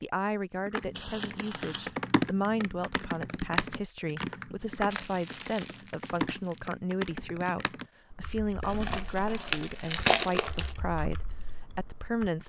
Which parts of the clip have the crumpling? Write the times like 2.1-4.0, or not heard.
0.9-2.0, 4.9-6.6, 8.6-10.8.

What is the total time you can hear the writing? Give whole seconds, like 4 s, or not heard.
not heard.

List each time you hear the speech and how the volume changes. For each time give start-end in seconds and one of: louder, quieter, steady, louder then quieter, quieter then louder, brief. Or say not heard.
0.0-12.4 steady.